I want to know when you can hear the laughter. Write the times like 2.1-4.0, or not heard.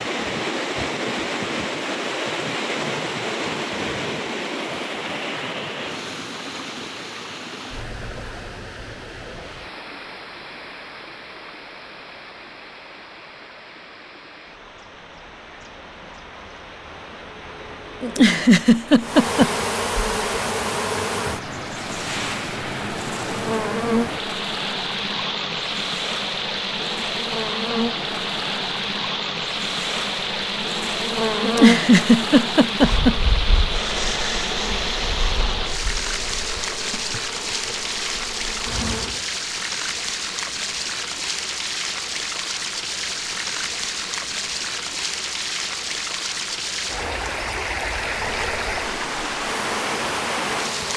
18.0-19.5, 31.4-33.1.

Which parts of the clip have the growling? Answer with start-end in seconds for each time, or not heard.
not heard.